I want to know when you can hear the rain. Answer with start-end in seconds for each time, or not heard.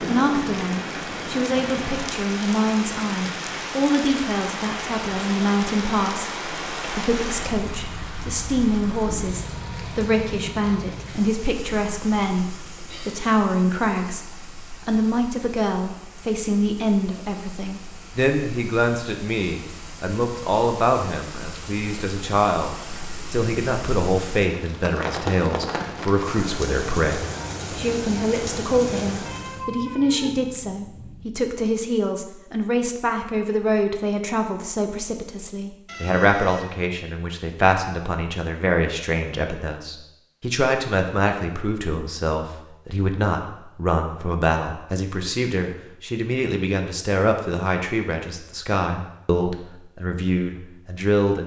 0.0-29.7.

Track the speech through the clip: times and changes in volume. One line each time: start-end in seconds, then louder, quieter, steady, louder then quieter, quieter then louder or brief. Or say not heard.
0.0-51.4 steady.